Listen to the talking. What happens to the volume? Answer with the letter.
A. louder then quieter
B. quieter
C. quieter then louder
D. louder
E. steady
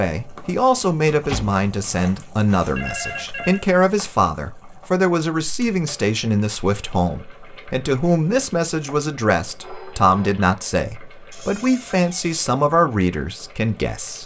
E.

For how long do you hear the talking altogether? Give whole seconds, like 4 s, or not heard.
14 s.